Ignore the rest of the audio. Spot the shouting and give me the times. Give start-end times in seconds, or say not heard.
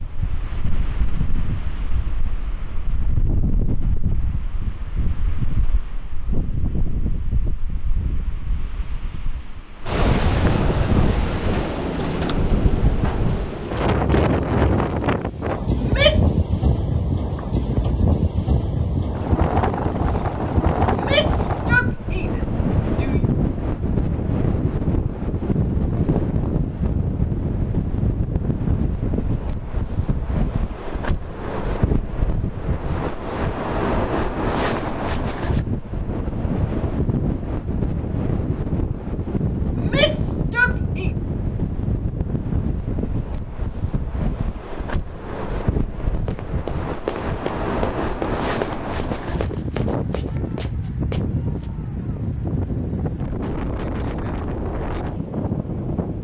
15.8-16.4, 20.9-23.2, 39.8-41.1.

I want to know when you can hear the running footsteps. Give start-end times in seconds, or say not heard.
46.0-51.7.